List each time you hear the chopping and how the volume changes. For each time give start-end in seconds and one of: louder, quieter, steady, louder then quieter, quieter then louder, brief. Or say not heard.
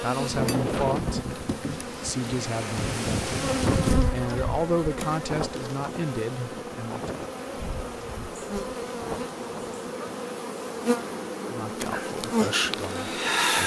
not heard.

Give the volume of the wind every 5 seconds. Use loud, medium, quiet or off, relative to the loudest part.
loud, medium, off.